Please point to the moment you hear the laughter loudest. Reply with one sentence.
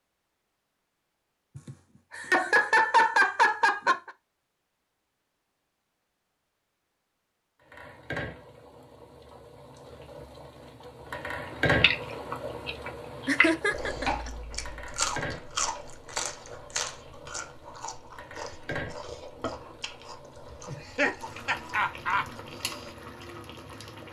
The volume of the laughter peaks at 3 seconds.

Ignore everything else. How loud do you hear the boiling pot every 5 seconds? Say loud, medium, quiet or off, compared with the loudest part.
off, medium, loud, medium, medium.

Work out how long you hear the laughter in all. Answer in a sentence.
You can hear the laughter for 5 seconds altogether.